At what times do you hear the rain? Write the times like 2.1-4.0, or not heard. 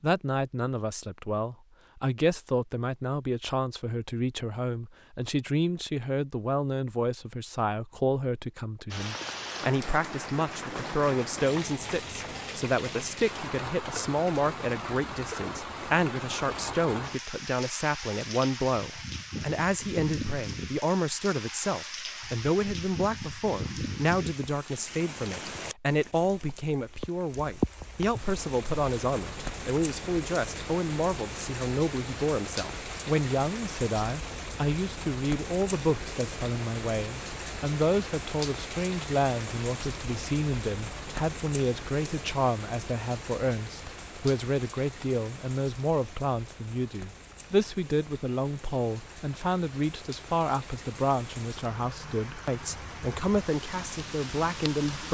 8.9-55.1.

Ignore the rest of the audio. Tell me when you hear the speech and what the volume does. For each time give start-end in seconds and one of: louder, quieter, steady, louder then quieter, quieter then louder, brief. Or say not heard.
0.0-55.1 steady.